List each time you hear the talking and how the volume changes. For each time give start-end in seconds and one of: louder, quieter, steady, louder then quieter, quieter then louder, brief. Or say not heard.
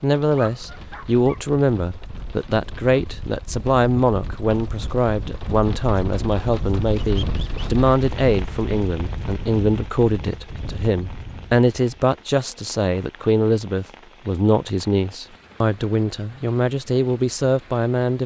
0.0-18.2 steady.